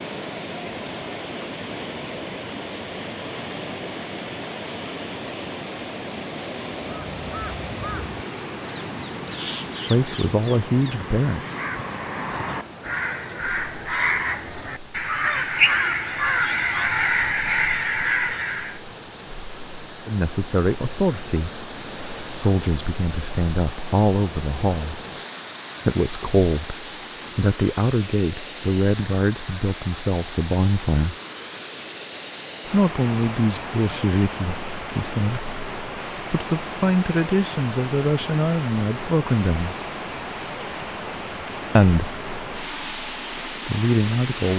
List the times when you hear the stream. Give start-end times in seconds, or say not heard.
0.0-44.5.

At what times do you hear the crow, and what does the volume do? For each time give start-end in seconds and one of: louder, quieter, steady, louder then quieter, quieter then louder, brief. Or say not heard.
6.8-18.8 louder.